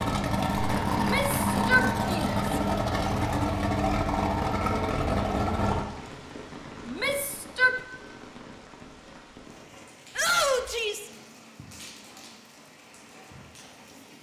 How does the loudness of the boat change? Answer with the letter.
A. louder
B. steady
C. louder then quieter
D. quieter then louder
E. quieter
B.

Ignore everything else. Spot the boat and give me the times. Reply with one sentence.
The boat can be heard from 0.0 to 5.8 s.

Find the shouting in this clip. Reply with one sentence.
The shouting can be heard from 0.9 to 2.4 s, from 6.8 to 7.8 s and from 10.2 to 11.1 s.